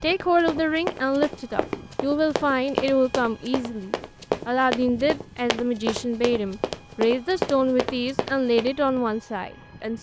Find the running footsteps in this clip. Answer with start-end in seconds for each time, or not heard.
0.1-9.0.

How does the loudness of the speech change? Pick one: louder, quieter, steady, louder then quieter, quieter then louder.
steady.